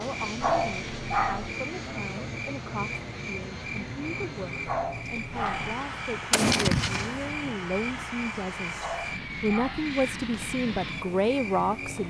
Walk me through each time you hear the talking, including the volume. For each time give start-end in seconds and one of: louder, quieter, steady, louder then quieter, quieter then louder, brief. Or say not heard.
0.0-12.0 louder.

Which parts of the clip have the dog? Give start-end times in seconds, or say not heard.
0.4-1.5, 4.7-5.8, 8.8-9.9.